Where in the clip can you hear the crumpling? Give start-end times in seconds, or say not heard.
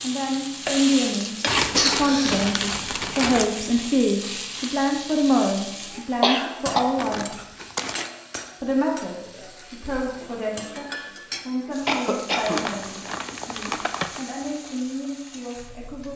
1.4-3.5, 7.0-8.1, 12.4-14.2.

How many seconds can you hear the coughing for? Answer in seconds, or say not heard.
3 s.